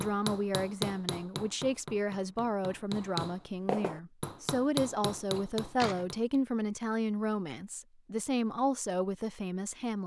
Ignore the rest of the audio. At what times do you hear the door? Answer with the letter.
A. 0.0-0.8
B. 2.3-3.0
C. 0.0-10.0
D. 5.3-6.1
D.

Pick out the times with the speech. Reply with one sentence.
The speech can be heard from 0.0 to 10.0 s.